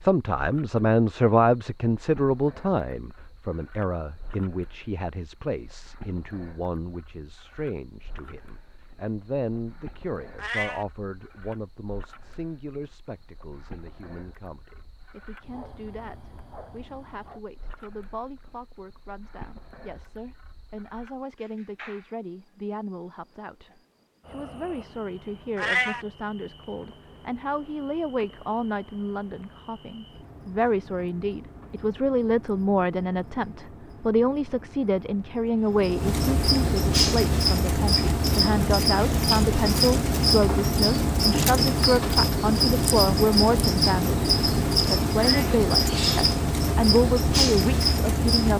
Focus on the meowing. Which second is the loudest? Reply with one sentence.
The loudest moment of the meowing is at 26 seconds.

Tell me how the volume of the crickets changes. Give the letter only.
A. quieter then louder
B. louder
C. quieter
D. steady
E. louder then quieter
B.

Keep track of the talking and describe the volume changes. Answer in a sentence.
The loudness of the talking goes down, then up.